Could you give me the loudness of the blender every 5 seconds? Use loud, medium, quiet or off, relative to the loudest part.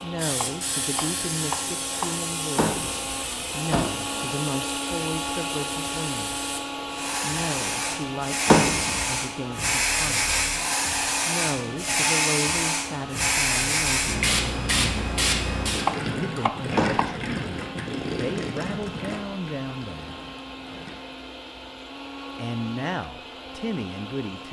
loud, loud, medium, medium, medium.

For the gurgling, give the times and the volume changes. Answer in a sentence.
You can hear the gurgling from 15.7 to 21.0 s, getting quieter.